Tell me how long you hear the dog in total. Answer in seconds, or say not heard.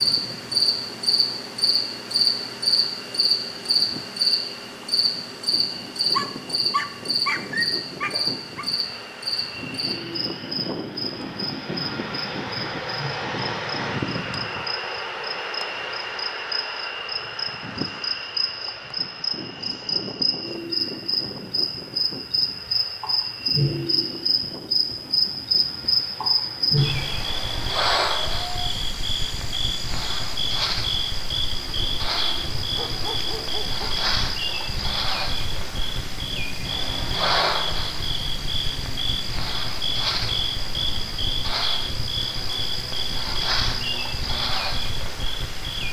4 s.